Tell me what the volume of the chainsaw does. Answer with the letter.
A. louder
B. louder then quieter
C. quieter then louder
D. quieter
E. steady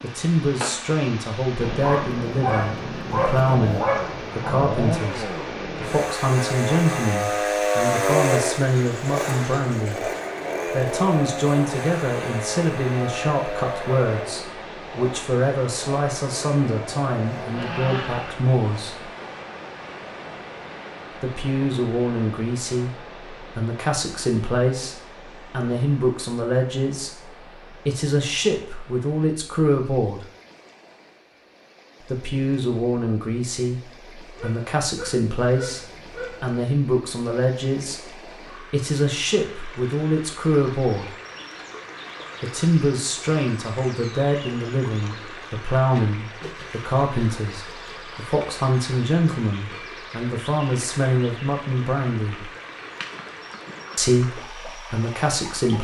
B.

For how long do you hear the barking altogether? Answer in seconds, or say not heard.
5 s.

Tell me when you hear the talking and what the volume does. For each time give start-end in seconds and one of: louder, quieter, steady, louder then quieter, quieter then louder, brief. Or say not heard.
0.0-19.1 steady
21.2-30.2 steady
32.0-41.1 steady
42.4-52.5 steady
54.0-55.7 brief.